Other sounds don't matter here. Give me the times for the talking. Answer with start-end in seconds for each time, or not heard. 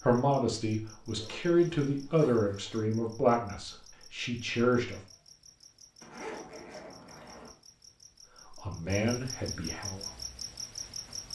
0.0-5.0, 8.6-10.0.